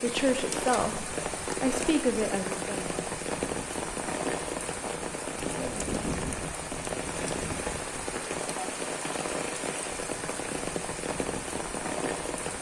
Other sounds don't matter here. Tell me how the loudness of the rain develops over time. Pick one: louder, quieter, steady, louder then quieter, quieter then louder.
steady.